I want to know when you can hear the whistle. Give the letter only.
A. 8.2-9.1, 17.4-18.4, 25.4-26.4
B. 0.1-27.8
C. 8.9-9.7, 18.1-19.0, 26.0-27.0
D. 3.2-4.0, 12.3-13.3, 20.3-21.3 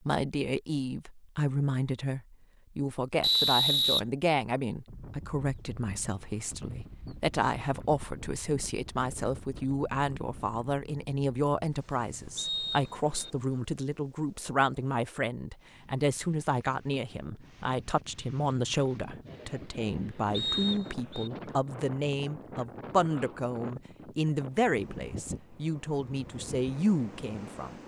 D.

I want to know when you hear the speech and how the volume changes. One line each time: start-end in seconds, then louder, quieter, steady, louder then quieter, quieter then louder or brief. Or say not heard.
0.1-27.8 steady.